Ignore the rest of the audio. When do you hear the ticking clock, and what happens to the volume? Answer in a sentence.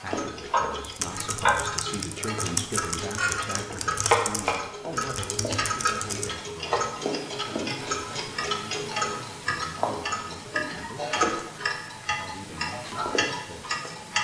The ticking clock can be heard from 0.0 to 14.2 s, at a steady volume.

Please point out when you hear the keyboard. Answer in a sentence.
You can hear the keyboard from 0.8 to 6.3 s.